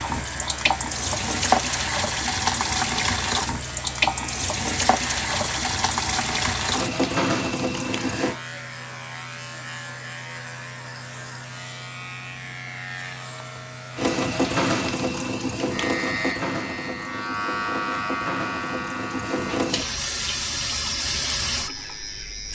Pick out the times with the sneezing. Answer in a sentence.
The sneezing can't be heard in this clip.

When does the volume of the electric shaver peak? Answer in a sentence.
The loudest moment of the electric shaver is at 18 seconds.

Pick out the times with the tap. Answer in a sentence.
You can hear the tap from 0.0 to 8.3 s and from 13.9 to 22.5 s.